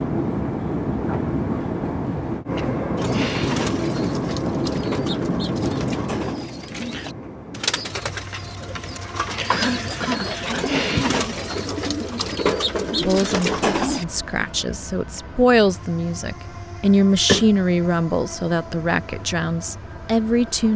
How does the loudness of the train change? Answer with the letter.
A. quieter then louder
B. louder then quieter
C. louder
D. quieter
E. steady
D.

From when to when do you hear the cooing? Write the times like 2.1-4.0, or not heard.
3.0-14.1.